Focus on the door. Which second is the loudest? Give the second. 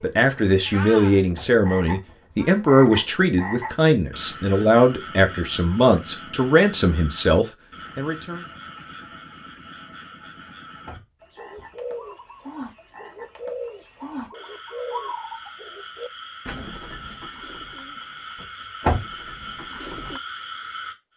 19 s.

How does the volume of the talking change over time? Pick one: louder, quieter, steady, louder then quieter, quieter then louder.
steady.